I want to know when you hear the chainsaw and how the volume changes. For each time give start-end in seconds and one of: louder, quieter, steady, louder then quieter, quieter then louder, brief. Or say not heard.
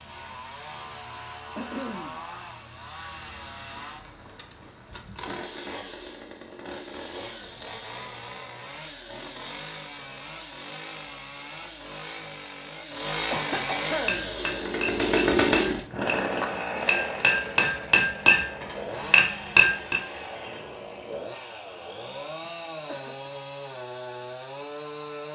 0.0-25.3 louder then quieter.